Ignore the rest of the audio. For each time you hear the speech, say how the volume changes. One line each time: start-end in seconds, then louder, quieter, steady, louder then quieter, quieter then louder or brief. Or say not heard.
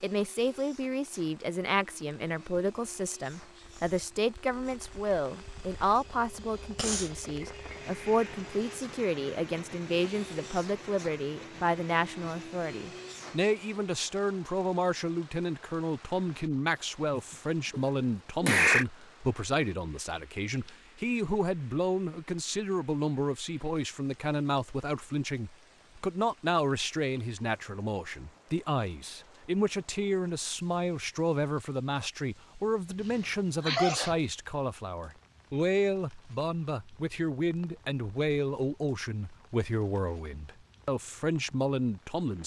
0.0-42.4 steady.